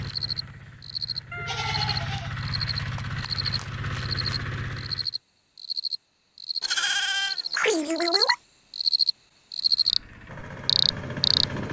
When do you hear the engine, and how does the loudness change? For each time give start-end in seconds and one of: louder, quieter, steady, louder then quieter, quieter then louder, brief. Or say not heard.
0.0-5.2 louder
9.6-11.6 brief.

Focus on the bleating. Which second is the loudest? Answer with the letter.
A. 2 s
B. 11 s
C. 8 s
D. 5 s
C.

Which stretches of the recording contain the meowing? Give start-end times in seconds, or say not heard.
1.3-1.9.